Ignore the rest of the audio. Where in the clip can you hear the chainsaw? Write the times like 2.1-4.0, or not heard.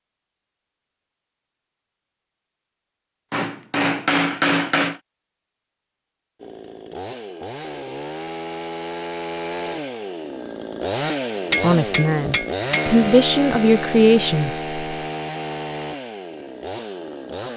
6.4-17.5.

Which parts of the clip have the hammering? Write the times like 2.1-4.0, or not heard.
3.3-5.0, 11.5-12.9.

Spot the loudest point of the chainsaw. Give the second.
13 s.